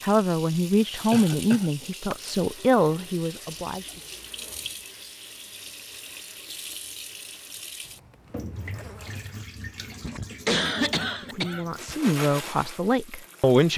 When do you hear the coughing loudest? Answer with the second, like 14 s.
11 s.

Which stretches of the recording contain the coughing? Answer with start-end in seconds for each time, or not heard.
1.1-2.1, 10.0-11.9.